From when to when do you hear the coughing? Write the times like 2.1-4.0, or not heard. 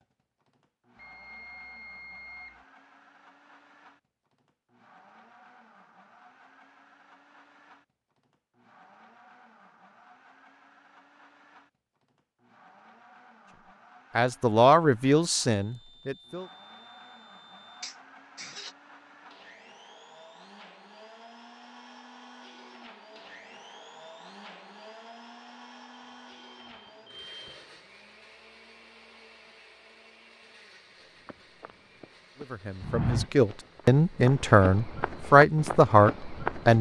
17.8-18.8.